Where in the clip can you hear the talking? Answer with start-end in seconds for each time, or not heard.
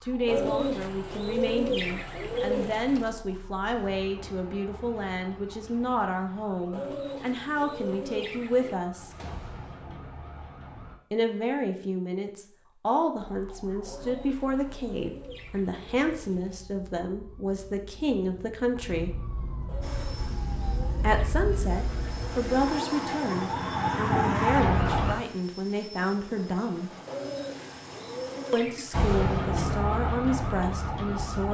0.0-9.2, 11.1-19.1, 21.0-26.9, 28.5-31.4.